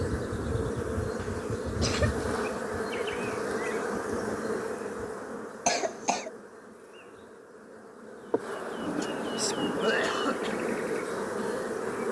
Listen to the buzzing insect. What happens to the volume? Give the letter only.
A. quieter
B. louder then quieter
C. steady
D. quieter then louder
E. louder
D.